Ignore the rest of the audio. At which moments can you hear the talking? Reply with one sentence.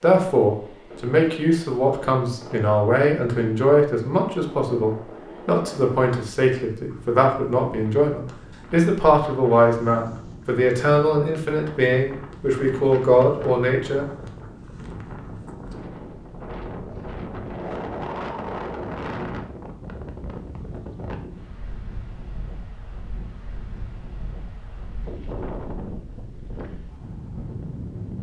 The talking can be heard from 0.0 to 14.1 s.